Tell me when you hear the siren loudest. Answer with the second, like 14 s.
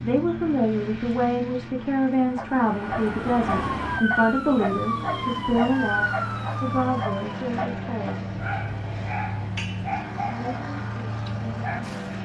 4 s.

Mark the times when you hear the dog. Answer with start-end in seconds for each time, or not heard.
2.4-12.2.